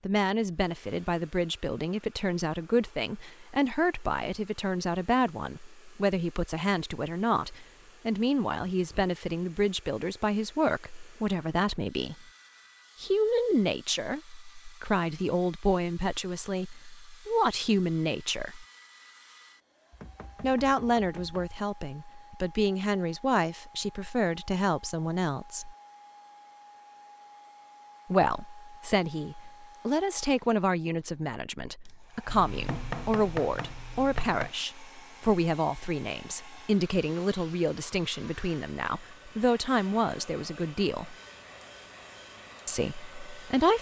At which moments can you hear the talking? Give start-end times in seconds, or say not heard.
0.1-12.2, 13.0-18.6, 20.4-25.8, 28.1-41.1, 42.6-43.7.